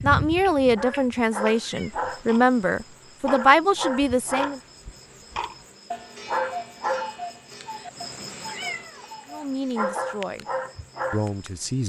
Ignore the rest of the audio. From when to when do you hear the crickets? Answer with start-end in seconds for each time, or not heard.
0.0-11.7.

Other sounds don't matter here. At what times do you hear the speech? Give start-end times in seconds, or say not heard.
0.0-4.6, 9.2-10.4, 11.1-11.8.